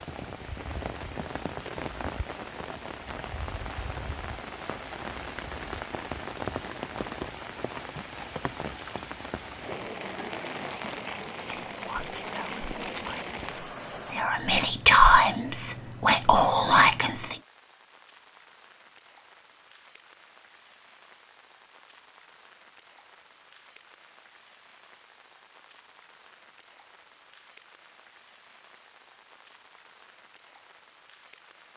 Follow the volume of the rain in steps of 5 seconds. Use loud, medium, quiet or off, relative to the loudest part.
loud, loud, loud, quiet, quiet, quiet, quiet.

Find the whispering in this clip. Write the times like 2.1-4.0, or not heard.
11.5-17.4.